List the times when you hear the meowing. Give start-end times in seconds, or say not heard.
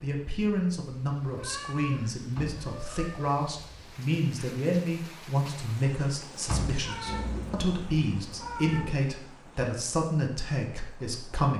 1.4-3.2, 6.8-8.9.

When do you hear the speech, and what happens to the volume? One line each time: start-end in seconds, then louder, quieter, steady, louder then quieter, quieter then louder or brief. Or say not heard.
0.0-11.5 steady.